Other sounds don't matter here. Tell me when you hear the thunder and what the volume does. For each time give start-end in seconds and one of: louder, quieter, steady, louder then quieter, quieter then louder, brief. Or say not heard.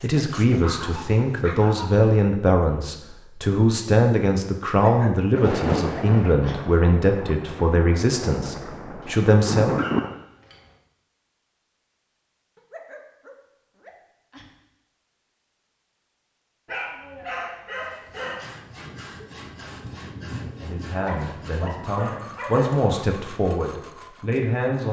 5.3-10.2 quieter then louder
18.4-22.4 louder then quieter.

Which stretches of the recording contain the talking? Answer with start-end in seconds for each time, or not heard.
0.0-9.8, 20.6-24.8.